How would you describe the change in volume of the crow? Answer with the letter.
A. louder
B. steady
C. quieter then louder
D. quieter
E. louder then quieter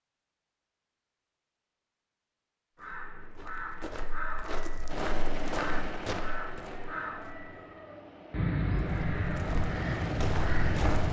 A.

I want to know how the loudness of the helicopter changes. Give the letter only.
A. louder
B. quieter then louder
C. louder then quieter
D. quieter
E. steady
B.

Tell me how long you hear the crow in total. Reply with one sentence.
You can hear the crow for 8 seconds altogether.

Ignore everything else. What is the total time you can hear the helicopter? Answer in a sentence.
The helicopter can be heard for 6 seconds in total.